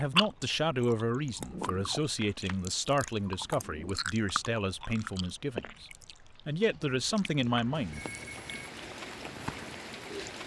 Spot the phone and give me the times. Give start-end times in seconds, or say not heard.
7.8-8.7.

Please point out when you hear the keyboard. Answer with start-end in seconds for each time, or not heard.
not heard.